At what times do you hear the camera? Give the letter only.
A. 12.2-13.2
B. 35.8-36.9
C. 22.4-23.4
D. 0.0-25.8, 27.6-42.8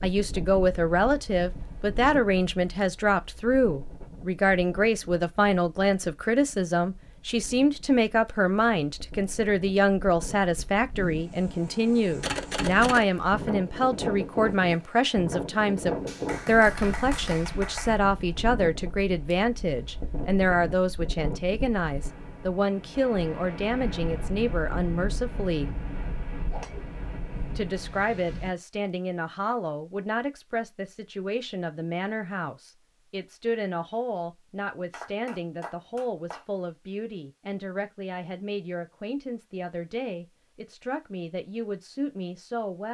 A.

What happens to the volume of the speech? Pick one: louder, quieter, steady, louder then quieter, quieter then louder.
quieter.